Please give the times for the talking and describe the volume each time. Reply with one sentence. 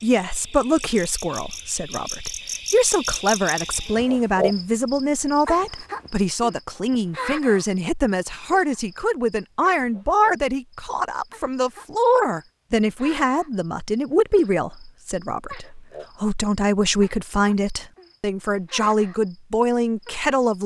The talking can be heard from 0.0 to 20.6 s, at a steady volume.